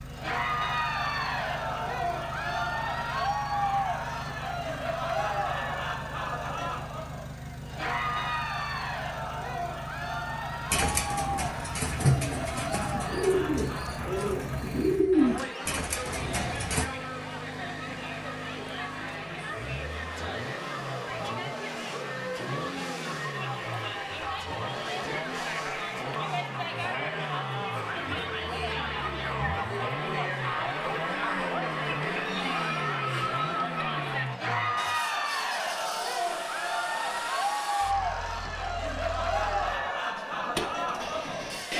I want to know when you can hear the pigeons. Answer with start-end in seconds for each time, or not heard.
10.7-16.9.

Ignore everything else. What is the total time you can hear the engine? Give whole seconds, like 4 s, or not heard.
42 s.